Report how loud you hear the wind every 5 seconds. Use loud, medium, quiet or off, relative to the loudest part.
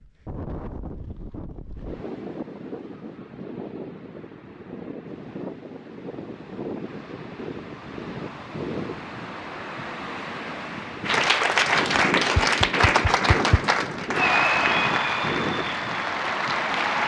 medium, loud, loud, loud.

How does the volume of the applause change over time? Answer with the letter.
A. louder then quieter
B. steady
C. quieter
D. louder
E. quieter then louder
C.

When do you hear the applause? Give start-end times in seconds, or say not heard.
11.1-17.0.